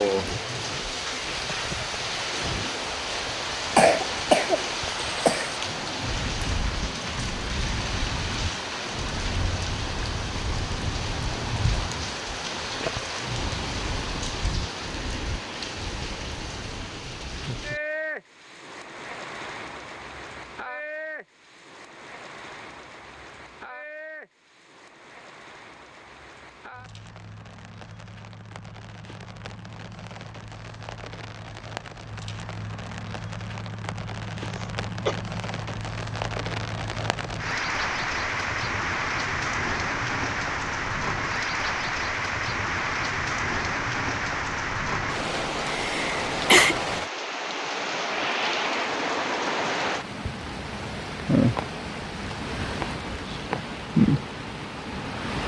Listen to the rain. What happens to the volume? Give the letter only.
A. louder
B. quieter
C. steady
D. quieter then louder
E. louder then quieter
D.